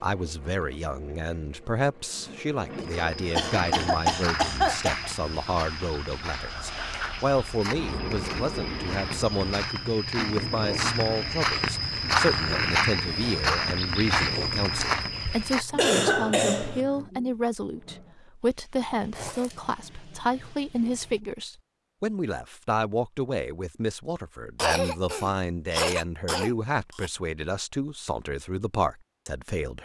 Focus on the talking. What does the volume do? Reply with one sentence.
The loudness of the talking stays about the same.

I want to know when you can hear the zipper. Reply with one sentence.
The zipper can be heard from 19.1 to 19.8 s.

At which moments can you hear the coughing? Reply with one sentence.
You can hear the coughing from 3.4 to 5.1 s, from 15.8 to 16.8 s and from 24.6 to 27.1 s.